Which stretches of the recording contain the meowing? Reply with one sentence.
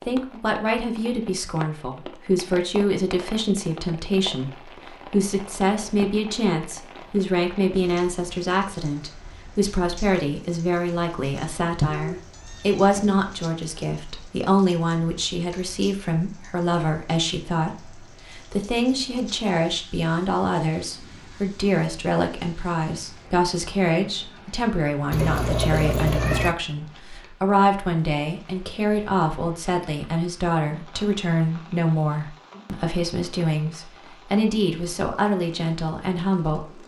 You can hear the meowing from 11.8 to 13.1 s and from 25.1 to 26.6 s.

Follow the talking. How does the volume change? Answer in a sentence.
The loudness of the talking stays about the same.